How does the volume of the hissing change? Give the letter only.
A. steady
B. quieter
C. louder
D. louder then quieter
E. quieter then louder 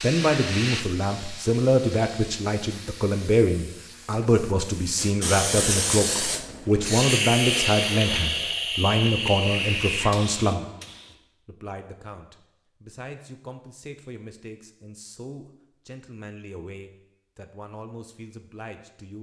E.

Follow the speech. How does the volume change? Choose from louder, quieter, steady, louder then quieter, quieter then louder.
quieter.